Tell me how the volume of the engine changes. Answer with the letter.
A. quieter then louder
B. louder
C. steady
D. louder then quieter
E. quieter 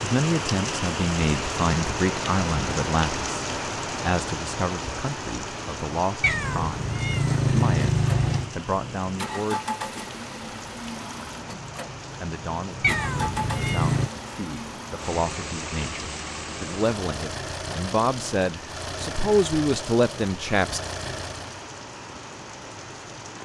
C.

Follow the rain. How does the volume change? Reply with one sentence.
The volume of the rain goes down.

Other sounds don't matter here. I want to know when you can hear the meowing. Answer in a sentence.
You can hear the meowing from 6.2 to 8.6 s and from 12.8 to 14.1 s.